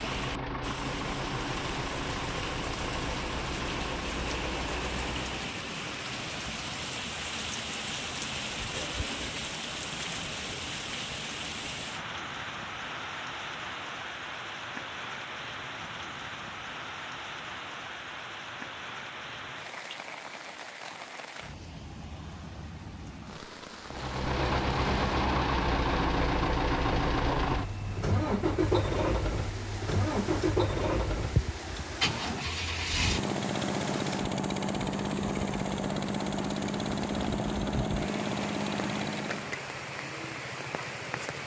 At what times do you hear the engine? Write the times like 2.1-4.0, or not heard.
0.0-5.5, 23.9-39.6.